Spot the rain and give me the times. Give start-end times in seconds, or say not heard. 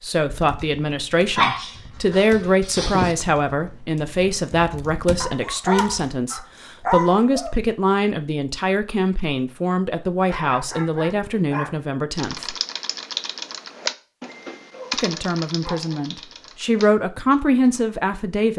not heard.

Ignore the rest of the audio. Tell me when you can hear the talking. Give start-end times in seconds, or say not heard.
0.0-12.6, 14.9-18.5.